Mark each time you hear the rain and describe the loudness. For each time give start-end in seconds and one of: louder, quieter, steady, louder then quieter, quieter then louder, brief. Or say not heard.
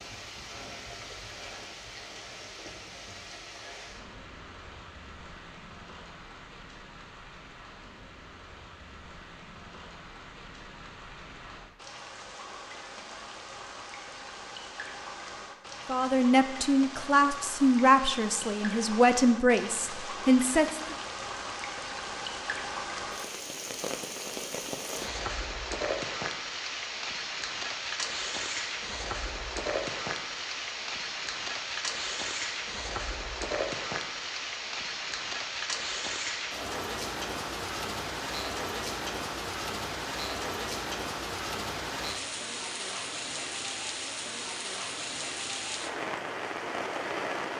0.0-47.5 louder.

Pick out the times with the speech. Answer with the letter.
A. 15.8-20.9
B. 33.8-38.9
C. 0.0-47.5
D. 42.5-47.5
A.